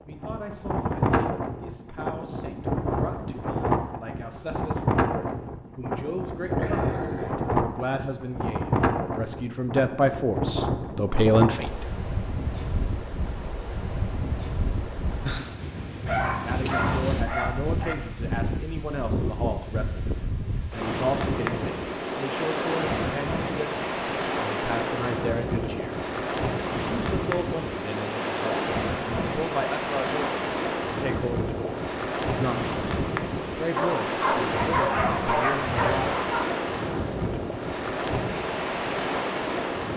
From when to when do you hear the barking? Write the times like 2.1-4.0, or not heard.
6.5-7.4, 16.1-17.9, 33.8-36.5.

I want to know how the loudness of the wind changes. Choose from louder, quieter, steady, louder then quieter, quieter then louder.
steady.